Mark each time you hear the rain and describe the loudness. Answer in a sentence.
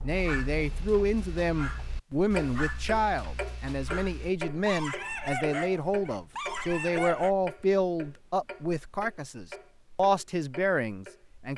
You can't hear the rain here.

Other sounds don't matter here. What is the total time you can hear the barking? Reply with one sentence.
You can hear the barking for 7 seconds altogether.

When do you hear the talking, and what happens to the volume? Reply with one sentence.
The talking can be heard from 0.0 to 11.5 s, at a steady volume.